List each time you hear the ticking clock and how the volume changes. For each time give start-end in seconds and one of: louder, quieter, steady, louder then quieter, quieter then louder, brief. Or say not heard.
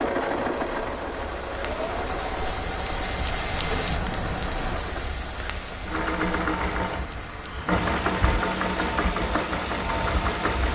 not heard.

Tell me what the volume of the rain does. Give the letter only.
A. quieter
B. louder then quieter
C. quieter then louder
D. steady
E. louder
B.